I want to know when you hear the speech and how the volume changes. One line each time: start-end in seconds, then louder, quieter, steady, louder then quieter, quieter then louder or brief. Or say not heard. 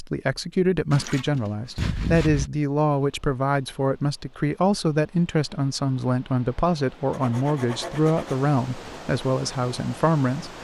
0.0-10.5 steady.